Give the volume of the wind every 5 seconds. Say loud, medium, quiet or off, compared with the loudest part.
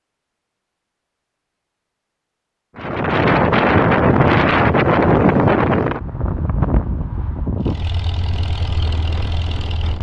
loud, medium.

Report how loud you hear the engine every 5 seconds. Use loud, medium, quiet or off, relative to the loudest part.
off, loud.